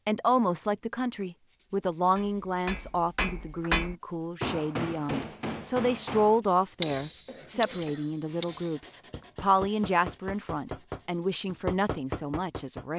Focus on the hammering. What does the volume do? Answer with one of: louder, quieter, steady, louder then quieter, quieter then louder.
quieter then louder.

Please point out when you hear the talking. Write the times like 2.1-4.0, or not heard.
0.1-12.9.